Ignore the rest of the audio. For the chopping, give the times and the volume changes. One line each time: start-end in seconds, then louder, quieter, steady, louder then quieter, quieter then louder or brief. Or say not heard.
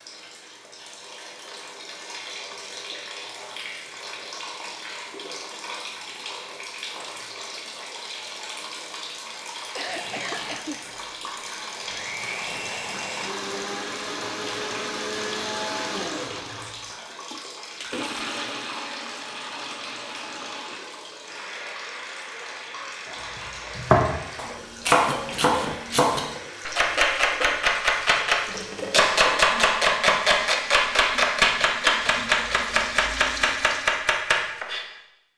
23.1-34.9 steady.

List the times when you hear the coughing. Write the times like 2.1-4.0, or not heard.
9.6-10.8, 25.1-25.8.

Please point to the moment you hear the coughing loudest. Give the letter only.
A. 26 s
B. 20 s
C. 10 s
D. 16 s
C.